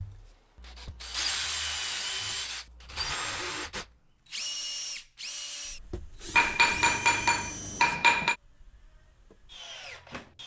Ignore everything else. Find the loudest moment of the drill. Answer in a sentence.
The volume of the drill peaks at 2 seconds.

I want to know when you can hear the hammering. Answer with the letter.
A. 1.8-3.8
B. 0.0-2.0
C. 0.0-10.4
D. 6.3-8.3
D.